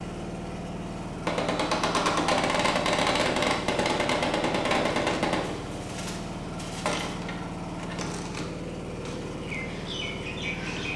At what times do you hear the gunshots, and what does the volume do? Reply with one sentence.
You can hear the gunshots from 1.2 to 5.5 s, at a steady volume.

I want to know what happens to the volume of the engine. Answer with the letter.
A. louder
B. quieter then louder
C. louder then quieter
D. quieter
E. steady
E.